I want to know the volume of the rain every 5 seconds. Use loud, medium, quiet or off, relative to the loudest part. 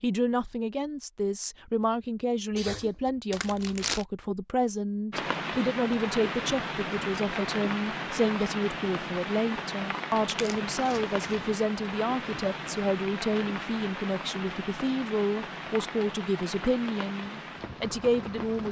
off, loud, loud, medium.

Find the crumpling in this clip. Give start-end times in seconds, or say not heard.
3.3-4.0, 10.2-11.5.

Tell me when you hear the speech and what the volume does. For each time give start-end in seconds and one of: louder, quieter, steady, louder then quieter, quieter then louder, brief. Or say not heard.
0.0-18.6 steady.